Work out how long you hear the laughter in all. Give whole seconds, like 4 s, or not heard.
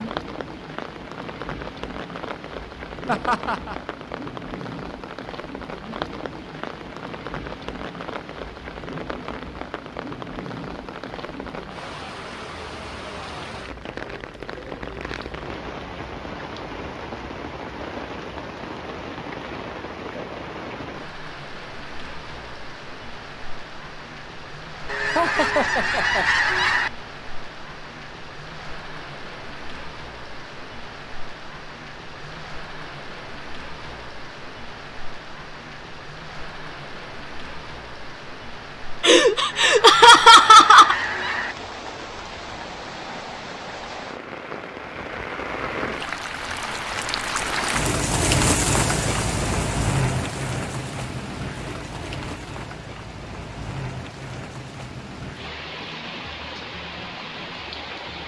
4 s.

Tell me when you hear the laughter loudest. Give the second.
40 s.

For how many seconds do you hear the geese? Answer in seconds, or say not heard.
4 s.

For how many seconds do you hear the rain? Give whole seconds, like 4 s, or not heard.
58 s.